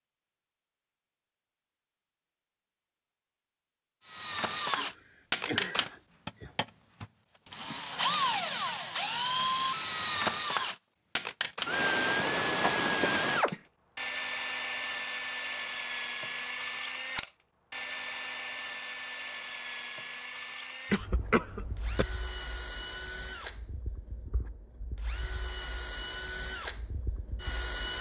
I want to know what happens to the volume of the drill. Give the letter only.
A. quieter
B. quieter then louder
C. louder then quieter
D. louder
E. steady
A.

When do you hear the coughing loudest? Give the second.
21 s.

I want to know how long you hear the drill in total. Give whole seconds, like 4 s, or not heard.
24 s.